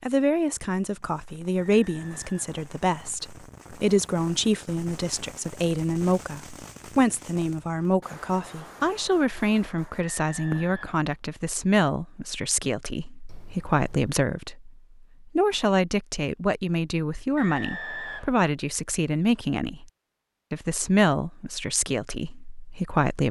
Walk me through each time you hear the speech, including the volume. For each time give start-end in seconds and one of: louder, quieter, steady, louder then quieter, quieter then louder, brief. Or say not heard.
0.0-19.9 steady
20.5-23.2 brief.